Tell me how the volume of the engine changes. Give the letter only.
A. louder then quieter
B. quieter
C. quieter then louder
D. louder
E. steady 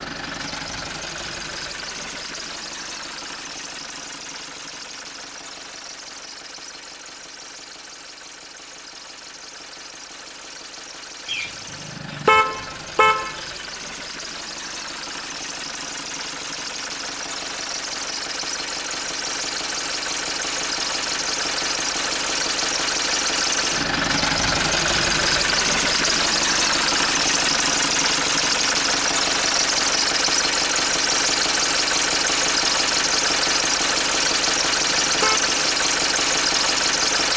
D.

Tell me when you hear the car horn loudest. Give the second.
12 s.